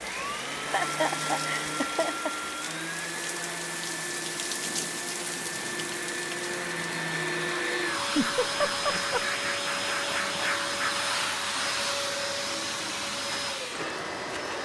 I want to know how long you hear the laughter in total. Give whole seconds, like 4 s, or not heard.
3 s.